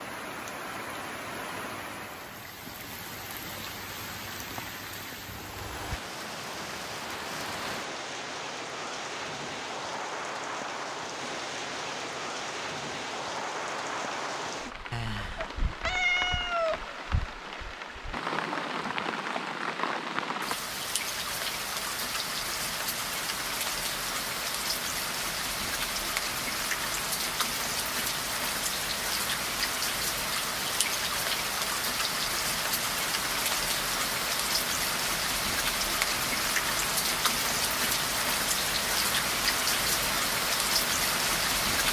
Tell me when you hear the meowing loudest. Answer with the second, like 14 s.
16 s.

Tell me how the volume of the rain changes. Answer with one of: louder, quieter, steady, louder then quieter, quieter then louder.
louder.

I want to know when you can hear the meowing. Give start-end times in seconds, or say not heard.
14.9-16.8.